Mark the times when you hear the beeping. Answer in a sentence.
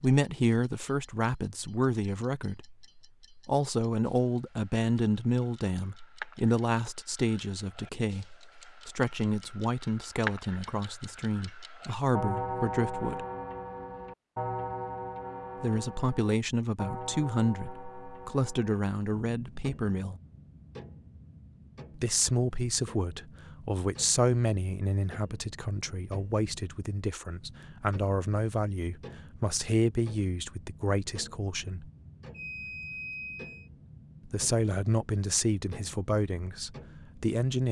The beeping can be heard from 32.3 to 33.7 s.